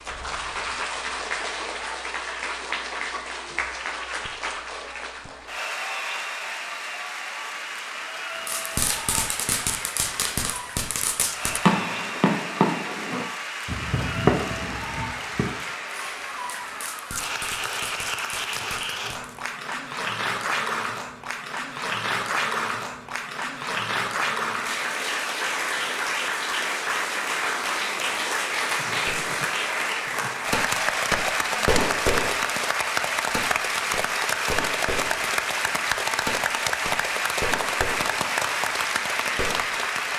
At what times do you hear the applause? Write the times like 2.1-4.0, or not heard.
0.0-40.1.